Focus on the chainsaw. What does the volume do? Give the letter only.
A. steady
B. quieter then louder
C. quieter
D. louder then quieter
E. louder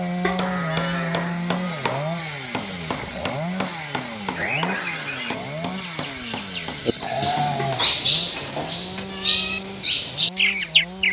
C.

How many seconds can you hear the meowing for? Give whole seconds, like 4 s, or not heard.
3 s.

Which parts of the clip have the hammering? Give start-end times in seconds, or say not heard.
0.3-9.1.